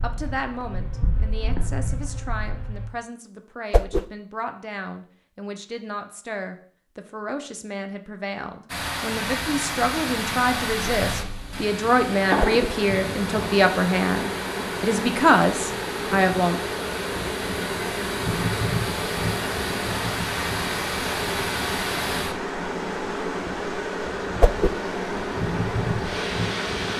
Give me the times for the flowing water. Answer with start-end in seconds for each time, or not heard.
8.7-26.9.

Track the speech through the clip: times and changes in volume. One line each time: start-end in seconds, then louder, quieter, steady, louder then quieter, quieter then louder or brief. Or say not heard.
0.0-16.6 louder.